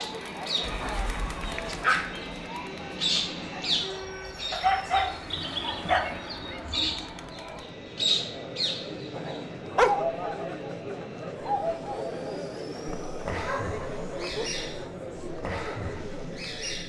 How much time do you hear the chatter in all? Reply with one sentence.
You can hear the chatter for 17 seconds altogether.